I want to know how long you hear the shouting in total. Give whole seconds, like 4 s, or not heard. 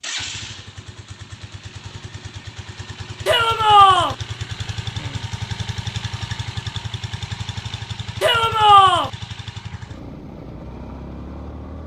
2 s.